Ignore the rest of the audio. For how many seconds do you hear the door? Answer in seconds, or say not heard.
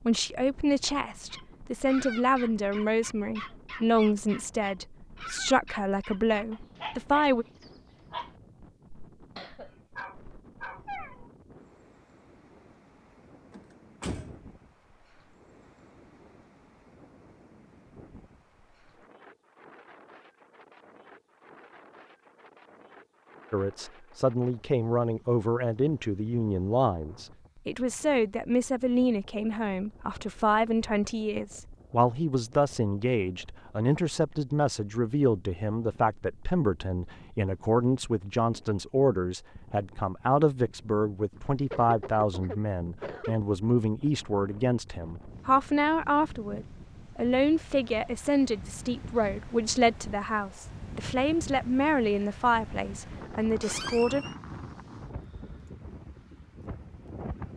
2 s.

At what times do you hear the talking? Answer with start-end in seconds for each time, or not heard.
0.0-7.5, 23.5-54.2.